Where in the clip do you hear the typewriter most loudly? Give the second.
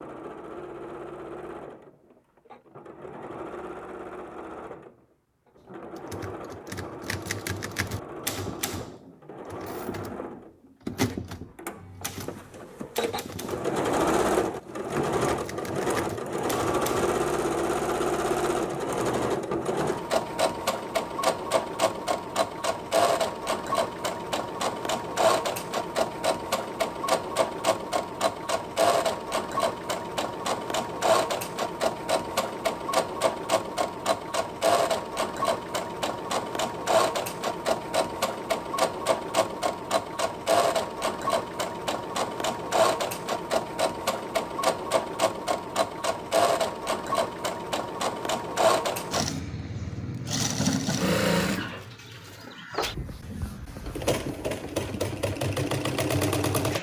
11 s.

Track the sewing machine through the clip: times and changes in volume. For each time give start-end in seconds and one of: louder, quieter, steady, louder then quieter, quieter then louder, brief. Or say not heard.
0.0-56.7 louder.